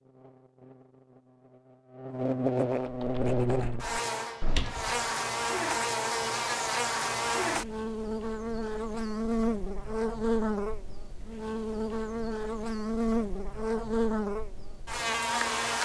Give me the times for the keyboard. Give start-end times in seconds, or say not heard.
2.8-5.0.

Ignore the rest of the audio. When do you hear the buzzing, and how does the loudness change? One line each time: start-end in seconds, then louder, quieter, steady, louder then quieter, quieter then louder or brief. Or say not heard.
0.0-15.7 steady.